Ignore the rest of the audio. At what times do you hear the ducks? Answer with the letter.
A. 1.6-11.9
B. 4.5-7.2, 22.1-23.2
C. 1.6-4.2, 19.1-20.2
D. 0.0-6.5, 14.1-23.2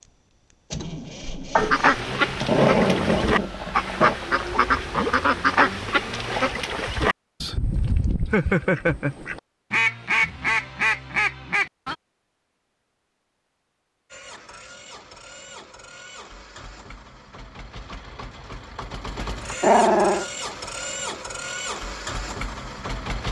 A.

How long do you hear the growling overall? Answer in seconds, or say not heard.
4 s.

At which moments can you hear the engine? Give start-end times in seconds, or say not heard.
0.0-6.5, 14.1-23.2.